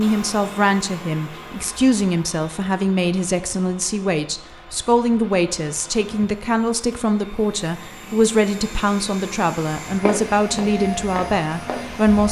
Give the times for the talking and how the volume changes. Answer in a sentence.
The talking can be heard from 0.0 to 12.2 s, at a steady volume.